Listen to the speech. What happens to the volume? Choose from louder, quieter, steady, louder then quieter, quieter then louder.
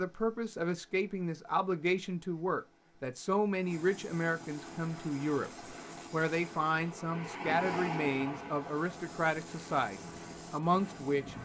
steady.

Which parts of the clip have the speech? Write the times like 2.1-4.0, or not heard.
0.0-5.5, 6.1-11.3.